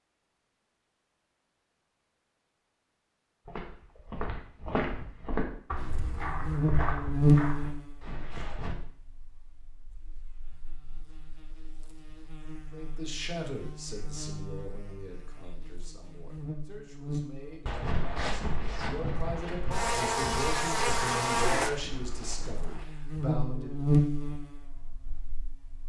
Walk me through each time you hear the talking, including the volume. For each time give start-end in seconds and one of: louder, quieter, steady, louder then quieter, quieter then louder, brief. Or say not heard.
12.7-23.8 quieter then louder.